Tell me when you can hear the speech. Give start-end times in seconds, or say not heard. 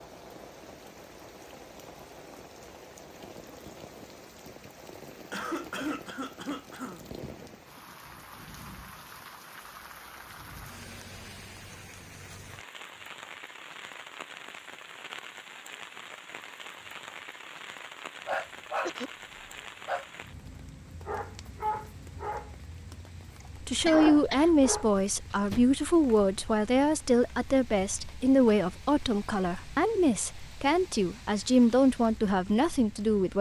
23.6-33.3.